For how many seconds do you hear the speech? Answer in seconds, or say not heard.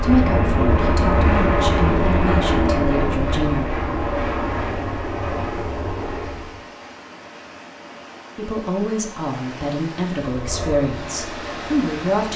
8 s.